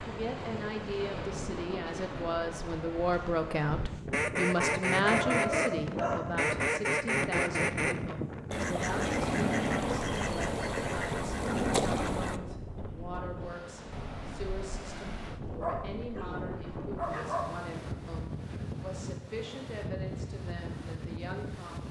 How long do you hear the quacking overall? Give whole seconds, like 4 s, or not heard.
8 s.